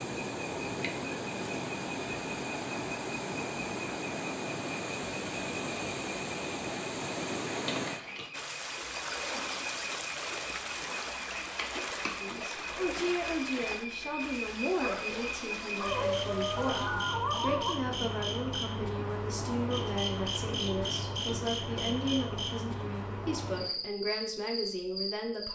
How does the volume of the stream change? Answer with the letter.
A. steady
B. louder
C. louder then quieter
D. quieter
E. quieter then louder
D.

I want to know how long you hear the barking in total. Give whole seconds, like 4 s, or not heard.
3 s.